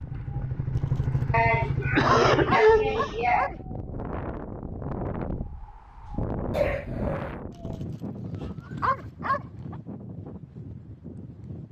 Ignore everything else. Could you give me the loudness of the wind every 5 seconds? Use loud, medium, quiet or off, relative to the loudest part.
loud, loud, medium.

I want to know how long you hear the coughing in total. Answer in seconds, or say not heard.
3 s.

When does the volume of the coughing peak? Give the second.
3 s.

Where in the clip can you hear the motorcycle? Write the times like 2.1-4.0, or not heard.
0.0-2.6.